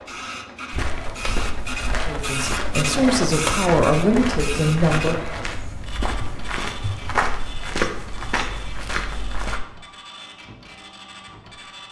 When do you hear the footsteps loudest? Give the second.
7 s.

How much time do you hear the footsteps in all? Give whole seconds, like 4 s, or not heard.
9 s.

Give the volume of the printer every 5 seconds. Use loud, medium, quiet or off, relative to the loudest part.
loud, medium, quiet.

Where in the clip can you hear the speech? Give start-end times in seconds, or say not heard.
2.0-5.4.